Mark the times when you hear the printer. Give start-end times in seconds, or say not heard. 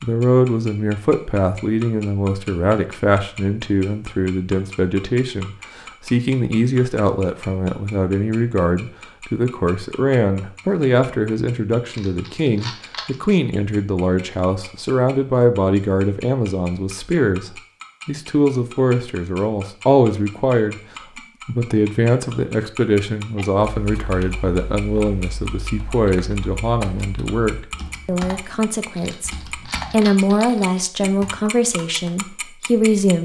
not heard.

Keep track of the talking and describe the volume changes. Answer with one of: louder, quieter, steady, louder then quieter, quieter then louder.
steady.